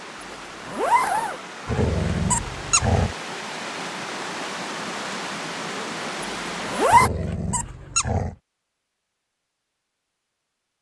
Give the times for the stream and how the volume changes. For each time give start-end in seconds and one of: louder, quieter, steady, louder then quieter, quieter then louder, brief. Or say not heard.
0.0-6.9 louder.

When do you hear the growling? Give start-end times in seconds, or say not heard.
1.6-3.1, 6.9-8.3.